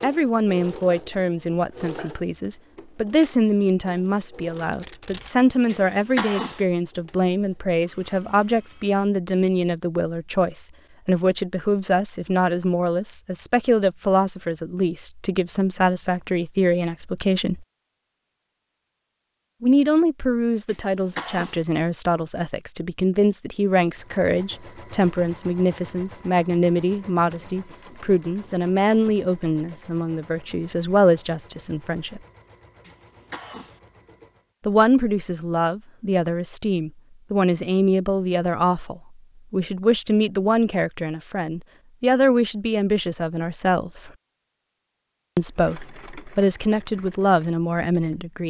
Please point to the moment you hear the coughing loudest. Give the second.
6 s.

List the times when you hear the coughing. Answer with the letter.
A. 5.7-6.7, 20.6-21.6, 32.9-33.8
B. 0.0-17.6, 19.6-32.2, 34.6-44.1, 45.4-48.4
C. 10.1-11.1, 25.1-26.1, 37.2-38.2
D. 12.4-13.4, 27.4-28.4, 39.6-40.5
A.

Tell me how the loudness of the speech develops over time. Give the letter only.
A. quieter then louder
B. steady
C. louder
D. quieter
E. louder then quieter
B.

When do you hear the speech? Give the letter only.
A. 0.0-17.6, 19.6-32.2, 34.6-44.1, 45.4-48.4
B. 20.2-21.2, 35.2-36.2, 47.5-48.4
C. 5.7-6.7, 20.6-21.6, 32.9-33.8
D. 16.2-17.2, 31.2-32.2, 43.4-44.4
A.